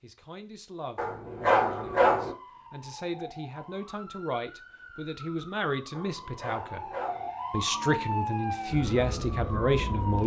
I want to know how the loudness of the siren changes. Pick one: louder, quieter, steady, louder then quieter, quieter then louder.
louder.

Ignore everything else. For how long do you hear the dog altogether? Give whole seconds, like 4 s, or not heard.
3 s.